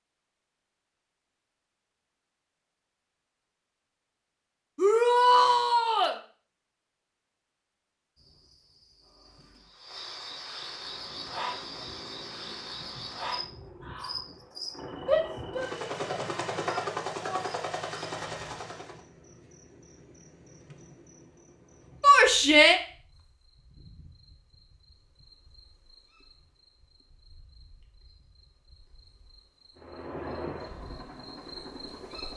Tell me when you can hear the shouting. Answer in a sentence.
You can hear the shouting from 4.8 to 6.2 s, from 15.1 to 17.4 s and from 22.0 to 22.8 s.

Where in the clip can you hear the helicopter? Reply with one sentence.
You can hear the helicopter from 10.6 to 19.0 s and from 29.8 to 32.3 s.